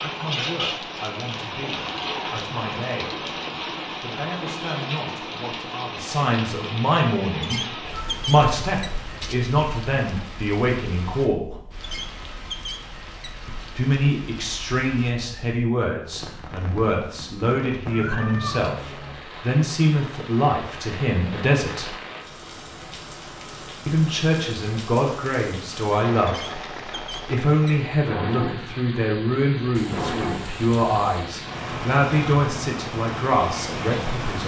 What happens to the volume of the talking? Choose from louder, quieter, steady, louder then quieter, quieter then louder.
louder.